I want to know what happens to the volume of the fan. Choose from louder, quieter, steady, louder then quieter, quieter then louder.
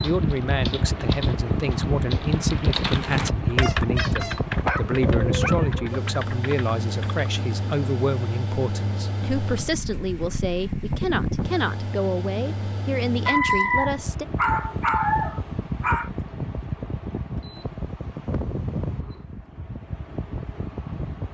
quieter.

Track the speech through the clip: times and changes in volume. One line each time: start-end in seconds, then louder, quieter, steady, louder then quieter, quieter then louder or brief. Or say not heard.
0.0-14.2 steady.